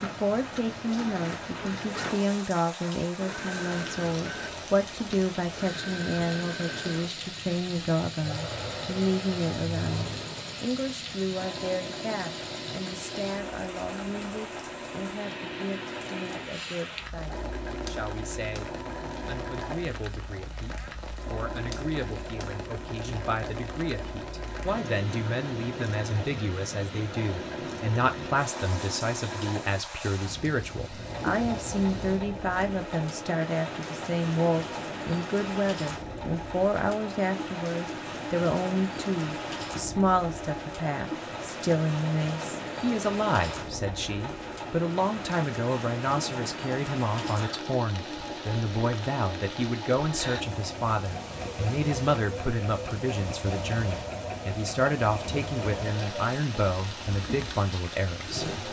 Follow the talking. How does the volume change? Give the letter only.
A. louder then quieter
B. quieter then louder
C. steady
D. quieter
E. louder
B.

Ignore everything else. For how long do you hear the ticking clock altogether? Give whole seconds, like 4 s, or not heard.
not heard.